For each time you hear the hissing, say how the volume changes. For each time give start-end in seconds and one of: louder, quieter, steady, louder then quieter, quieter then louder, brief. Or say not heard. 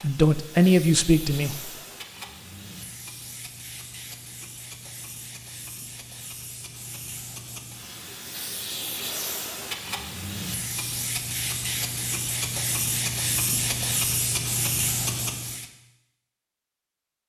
0.0-15.7 louder.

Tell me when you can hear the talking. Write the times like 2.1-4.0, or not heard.
0.0-1.7.